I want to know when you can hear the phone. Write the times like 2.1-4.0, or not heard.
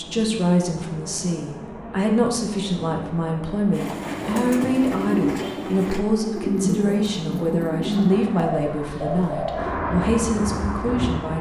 not heard.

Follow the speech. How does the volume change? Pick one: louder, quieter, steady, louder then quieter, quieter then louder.
steady.